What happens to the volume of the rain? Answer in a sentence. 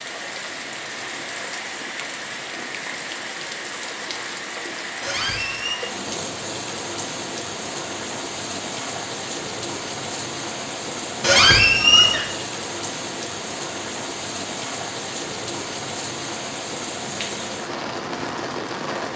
The loudness of the rain stays about the same.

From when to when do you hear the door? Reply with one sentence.
You can hear the door from 5.0 to 5.8 s and from 11.2 to 12.2 s.